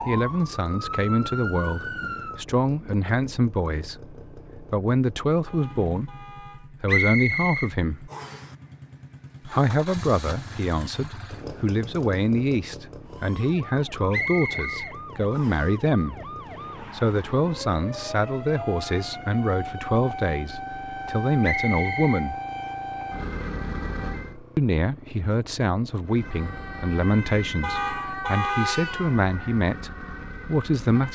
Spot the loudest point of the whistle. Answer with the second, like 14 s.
7 s.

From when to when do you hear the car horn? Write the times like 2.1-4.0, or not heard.
5.5-6.8, 17.9-19.2, 27.6-29.0.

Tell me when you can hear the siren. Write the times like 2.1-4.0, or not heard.
0.0-2.5, 13.1-24.4, 26.0-31.1.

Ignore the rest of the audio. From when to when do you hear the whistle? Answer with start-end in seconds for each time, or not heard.
6.8-8.4, 14.1-15.7, 21.4-22.8.